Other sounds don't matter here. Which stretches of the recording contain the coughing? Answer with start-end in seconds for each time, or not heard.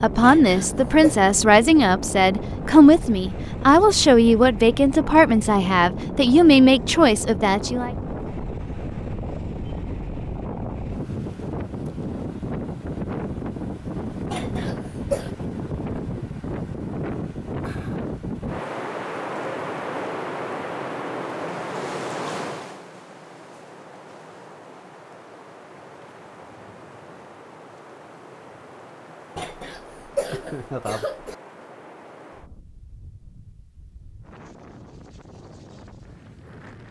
0.2-1.1, 14.3-15.3, 29.4-31.4.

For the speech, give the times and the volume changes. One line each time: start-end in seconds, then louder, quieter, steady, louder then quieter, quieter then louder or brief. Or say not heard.
0.0-7.9 steady.